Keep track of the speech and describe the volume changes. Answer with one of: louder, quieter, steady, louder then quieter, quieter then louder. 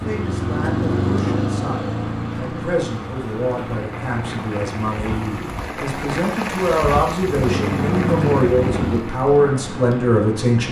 louder.